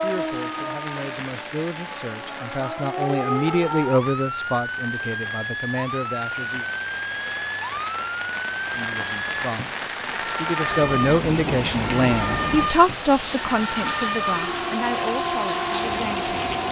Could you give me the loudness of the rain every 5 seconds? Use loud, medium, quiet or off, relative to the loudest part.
medium, medium, loud, loud.